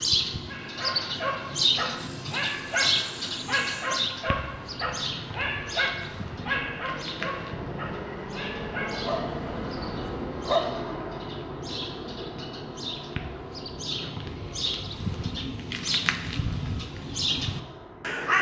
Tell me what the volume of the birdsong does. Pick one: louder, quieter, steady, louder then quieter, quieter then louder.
quieter then louder.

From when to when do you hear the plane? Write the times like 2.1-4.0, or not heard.
0.0-18.3.